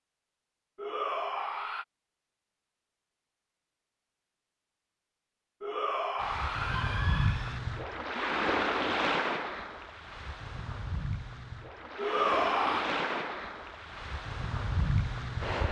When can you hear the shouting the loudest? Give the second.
12 s.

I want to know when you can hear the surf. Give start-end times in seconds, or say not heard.
6.2-15.6.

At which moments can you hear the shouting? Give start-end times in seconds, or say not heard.
0.8-1.9, 5.6-7.6, 11.9-12.8.